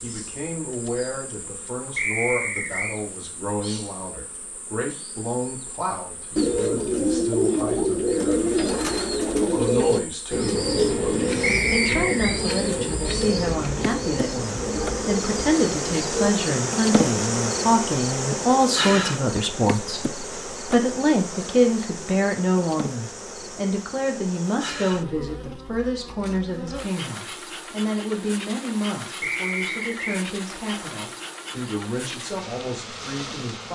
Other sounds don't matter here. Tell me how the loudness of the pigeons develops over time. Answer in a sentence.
The loudness of the pigeons goes down.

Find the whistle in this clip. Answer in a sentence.
The whistle can be heard from 1.9 to 3.0 s, from 11.4 to 12.3 s and from 29.2 to 30.2 s.